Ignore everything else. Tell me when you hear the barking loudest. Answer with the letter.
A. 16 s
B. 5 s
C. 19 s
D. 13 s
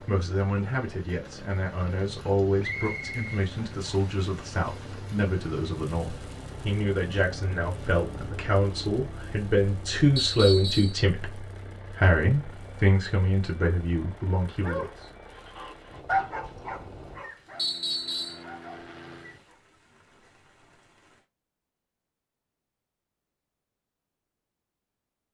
A.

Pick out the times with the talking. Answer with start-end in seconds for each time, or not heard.
0.1-15.1.